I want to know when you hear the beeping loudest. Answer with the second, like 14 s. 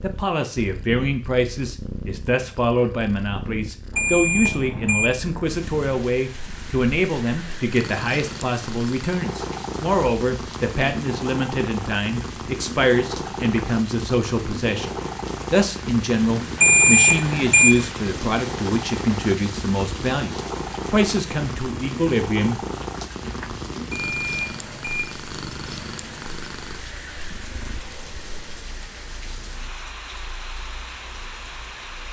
17 s.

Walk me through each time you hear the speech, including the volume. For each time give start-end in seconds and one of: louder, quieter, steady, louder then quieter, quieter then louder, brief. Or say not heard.
0.0-22.6 steady.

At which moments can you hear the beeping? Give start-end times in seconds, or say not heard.
4.0-5.0, 16.6-17.7, 23.9-25.0.